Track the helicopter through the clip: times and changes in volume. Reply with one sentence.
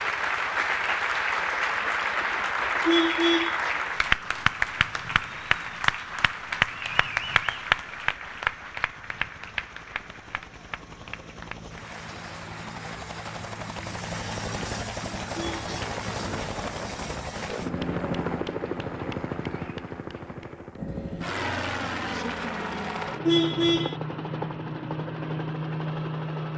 The helicopter can be heard from 0.0 to 26.5 s, getting louder.